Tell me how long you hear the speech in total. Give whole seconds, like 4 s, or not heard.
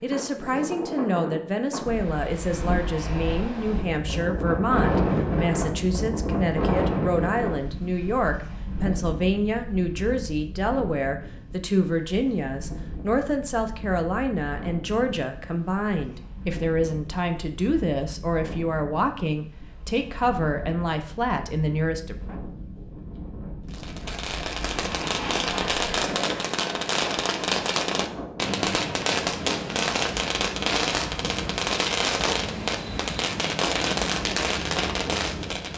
22 s.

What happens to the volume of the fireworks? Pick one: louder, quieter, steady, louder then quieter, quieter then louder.
steady.